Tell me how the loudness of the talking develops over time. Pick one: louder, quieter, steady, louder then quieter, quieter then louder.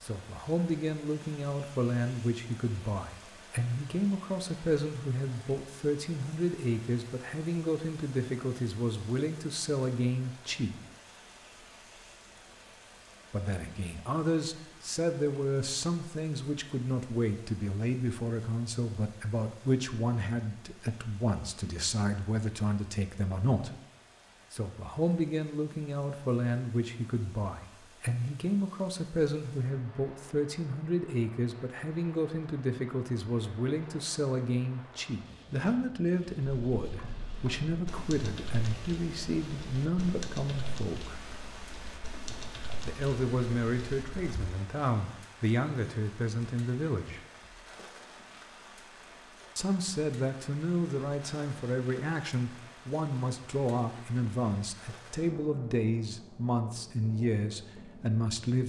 steady.